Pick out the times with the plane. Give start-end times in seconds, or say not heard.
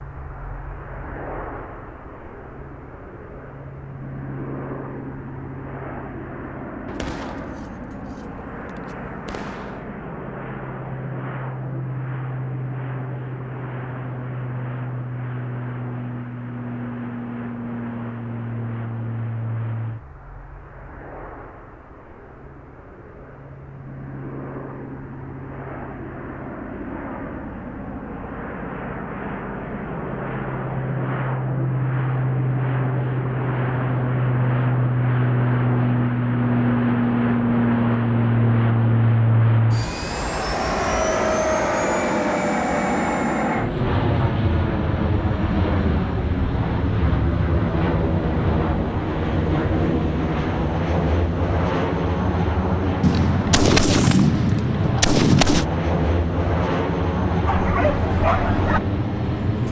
0.0-59.6.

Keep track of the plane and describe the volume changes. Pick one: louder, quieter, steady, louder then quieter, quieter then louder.
louder.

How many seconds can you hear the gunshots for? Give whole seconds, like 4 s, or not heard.
6 s.